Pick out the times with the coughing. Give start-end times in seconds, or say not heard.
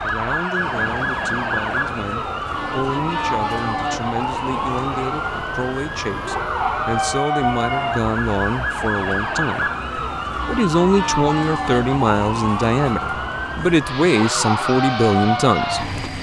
not heard.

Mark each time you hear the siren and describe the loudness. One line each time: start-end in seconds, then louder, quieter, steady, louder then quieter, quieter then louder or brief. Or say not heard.
0.0-16.1 steady.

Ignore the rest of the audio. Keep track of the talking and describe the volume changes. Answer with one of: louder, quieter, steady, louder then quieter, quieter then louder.
louder.